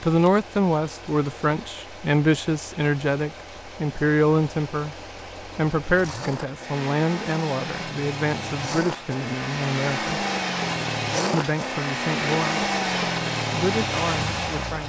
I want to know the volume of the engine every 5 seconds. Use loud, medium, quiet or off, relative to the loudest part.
quiet, medium, loud.